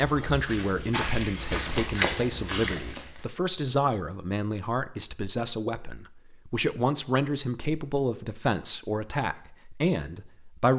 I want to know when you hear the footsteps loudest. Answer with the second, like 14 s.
2 s.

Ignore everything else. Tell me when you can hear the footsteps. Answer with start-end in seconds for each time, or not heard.
0.0-3.2.